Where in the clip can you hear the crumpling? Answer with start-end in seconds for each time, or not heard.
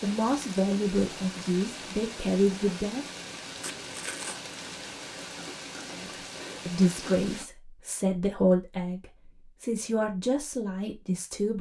3.5-4.4.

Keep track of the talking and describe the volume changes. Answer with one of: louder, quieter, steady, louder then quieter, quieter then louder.
steady.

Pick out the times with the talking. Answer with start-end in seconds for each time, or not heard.
0.0-3.0, 6.0-11.5.